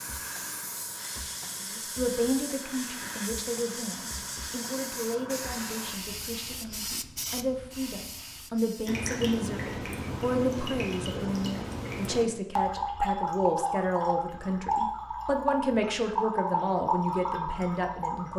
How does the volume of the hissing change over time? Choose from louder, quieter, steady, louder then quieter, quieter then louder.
steady.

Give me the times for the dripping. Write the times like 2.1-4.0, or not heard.
8.8-18.3.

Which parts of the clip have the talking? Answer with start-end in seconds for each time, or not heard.
1.6-18.3.